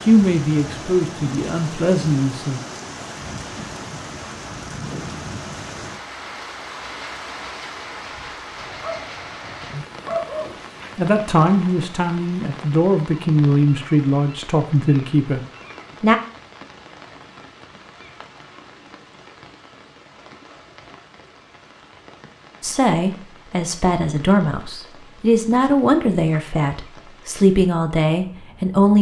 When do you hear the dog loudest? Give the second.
10 s.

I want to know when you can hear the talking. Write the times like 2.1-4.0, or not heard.
0.0-2.6, 10.9-16.1, 22.6-28.9.